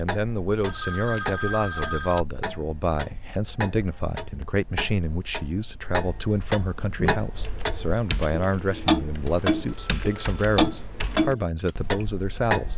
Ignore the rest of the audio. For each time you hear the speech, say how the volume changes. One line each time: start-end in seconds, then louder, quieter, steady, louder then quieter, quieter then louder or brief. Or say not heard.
0.0-12.7 steady.